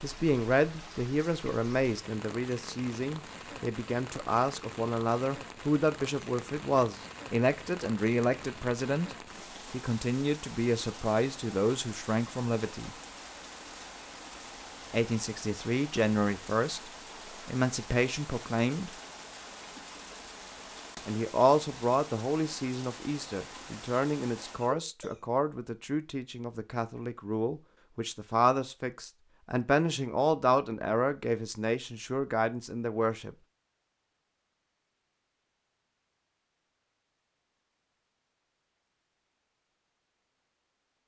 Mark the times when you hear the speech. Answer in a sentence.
You can hear the speech from 0.0 to 12.9 s, from 14.9 to 18.9 s and from 21.1 to 33.4 s.